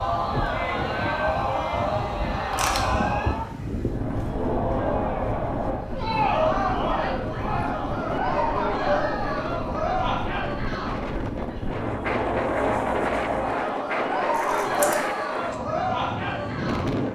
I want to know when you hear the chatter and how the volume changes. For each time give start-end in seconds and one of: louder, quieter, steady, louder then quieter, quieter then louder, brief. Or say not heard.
0.0-17.0 steady.